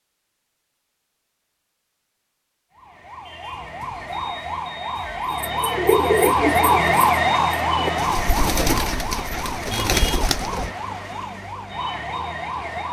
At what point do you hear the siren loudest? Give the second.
7 s.